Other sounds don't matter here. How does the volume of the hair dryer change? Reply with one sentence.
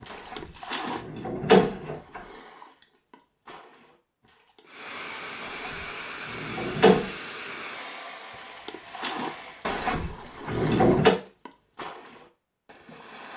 The volume of the hair dryer goes down.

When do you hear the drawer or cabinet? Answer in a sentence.
You can hear the drawer or cabinet from 0.1 to 2.2 s, from 5.4 to 7.1 s and from 9.7 to 11.2 s.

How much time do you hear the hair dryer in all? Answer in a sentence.
You can hear the hair dryer for 5 seconds altogether.